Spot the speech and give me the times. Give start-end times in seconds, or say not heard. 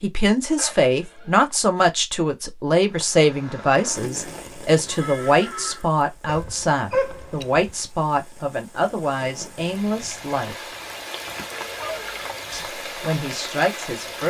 0.0-10.7, 12.5-14.2.